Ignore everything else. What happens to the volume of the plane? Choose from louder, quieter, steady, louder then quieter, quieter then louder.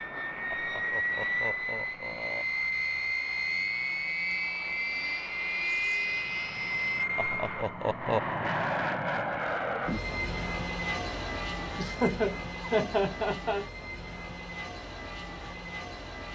quieter.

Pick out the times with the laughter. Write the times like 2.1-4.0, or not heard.
0.5-2.5, 7.2-8.2, 11.8-13.7.